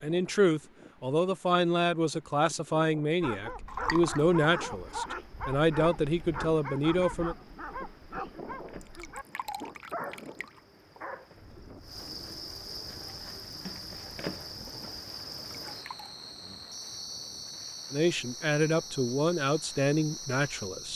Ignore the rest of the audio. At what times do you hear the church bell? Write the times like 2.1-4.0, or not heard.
not heard.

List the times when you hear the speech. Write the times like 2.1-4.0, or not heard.
0.0-7.3, 17.9-20.9.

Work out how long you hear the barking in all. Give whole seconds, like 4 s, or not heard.
8 s.